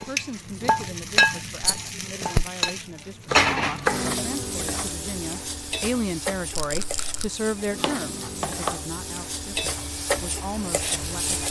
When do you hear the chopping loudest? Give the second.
4 s.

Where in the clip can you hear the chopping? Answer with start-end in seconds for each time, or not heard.
3.2-4.2, 7.8-8.8.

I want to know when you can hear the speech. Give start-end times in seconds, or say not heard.
0.0-11.4.